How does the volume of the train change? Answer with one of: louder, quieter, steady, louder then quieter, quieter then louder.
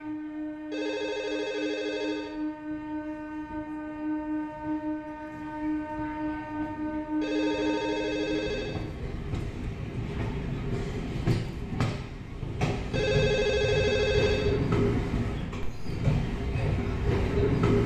louder.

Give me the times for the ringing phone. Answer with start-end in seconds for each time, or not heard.
0.7-2.4, 7.2-8.8, 12.9-14.6.